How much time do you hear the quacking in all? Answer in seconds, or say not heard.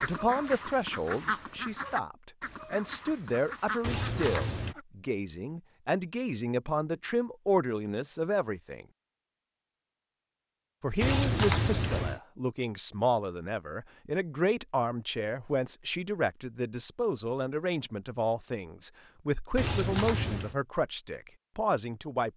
5 s.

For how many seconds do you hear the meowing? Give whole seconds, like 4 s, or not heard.
3 s.